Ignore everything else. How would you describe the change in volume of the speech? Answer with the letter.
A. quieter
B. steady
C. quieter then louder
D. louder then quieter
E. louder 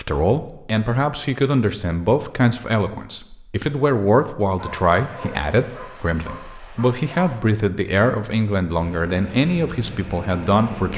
B.